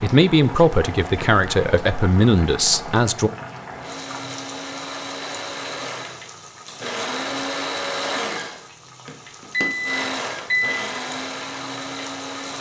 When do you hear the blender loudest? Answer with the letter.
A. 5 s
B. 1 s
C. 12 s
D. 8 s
D.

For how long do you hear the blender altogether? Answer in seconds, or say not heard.
9 s.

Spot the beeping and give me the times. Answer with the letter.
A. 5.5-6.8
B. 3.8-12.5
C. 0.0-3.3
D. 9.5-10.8
D.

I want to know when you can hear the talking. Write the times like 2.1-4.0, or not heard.
0.0-3.3.